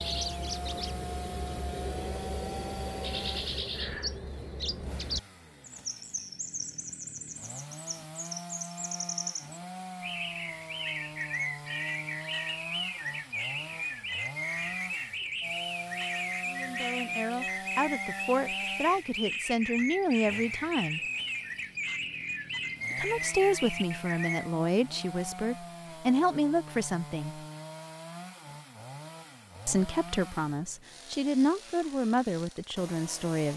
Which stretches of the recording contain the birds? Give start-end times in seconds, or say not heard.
0.0-24.5.